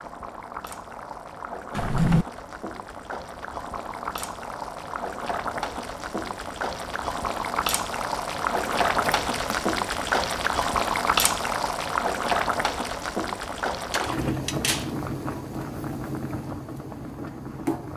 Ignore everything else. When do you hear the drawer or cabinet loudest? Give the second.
2 s.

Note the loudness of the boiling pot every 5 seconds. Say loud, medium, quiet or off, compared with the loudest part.
medium, loud, loud, medium.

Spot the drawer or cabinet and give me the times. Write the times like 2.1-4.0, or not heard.
1.8-2.2, 8.5-9.6, 13.9-14.9.